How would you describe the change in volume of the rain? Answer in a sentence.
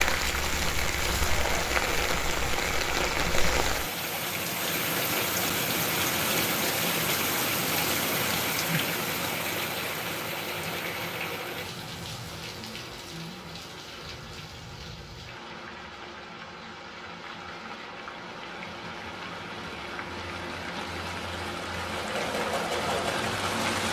The volume of the rain goes down, then up.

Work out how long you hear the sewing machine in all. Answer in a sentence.
You can hear the sewing machine for 2 seconds altogether.